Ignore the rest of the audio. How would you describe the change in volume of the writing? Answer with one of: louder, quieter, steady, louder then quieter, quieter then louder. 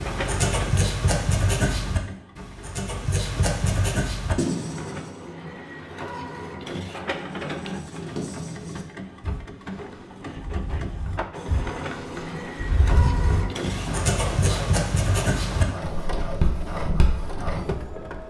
quieter then louder.